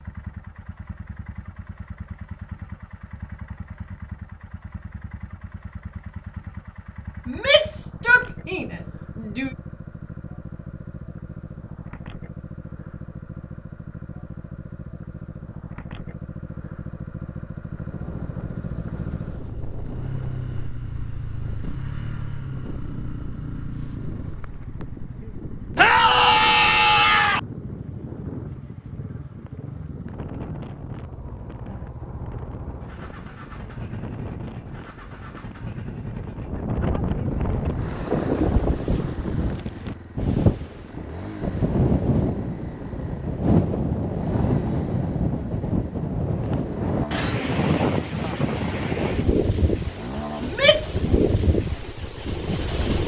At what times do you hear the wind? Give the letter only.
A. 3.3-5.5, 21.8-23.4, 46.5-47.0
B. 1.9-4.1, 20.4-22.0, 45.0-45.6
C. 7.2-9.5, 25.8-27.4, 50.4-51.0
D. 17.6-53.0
D.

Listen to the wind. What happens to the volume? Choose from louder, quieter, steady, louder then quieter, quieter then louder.
louder.